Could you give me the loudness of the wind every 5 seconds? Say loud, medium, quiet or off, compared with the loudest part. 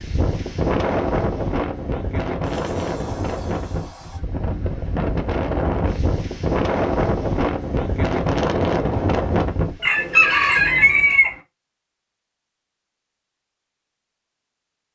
loud, loud, off.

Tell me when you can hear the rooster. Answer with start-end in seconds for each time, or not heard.
9.8-11.3.